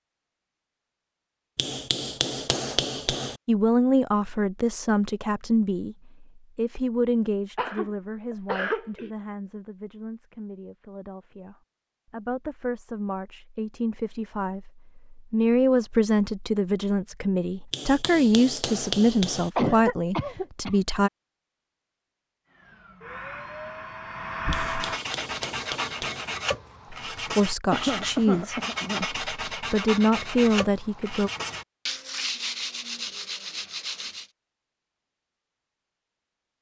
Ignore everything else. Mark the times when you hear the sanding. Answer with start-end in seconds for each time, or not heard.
24.6-34.2.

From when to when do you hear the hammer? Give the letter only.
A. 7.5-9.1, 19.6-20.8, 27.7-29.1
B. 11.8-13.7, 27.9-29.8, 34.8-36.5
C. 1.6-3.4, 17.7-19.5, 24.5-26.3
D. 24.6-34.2
C.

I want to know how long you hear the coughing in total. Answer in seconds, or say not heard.
4 s.